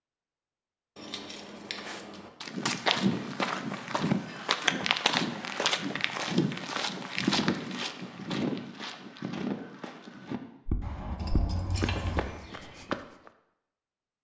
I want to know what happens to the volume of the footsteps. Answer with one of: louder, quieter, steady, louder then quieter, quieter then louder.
quieter.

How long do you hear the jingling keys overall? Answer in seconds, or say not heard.
3 s.